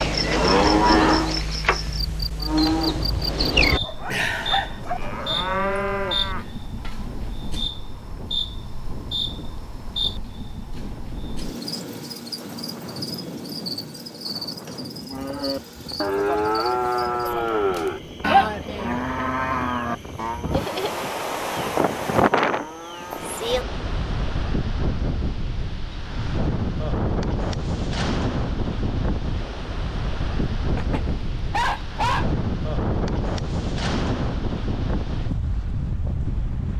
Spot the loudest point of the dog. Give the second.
32 s.